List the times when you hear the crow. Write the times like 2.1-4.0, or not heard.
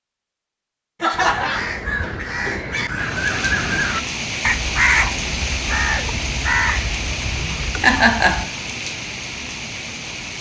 1.1-8.3.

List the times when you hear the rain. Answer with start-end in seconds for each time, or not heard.
3.0-10.3.